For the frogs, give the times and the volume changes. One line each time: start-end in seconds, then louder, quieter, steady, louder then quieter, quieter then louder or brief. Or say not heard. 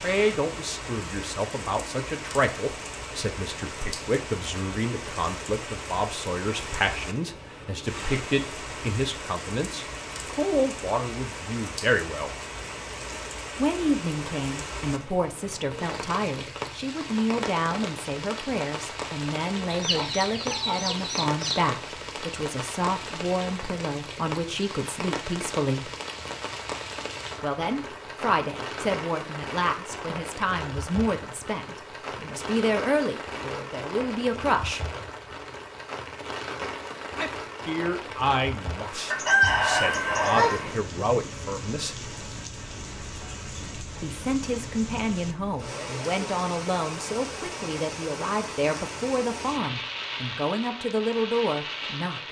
not heard.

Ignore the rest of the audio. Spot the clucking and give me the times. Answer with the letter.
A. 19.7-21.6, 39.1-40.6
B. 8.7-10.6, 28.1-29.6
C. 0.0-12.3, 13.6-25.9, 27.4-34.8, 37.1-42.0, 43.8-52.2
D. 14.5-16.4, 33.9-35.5
A.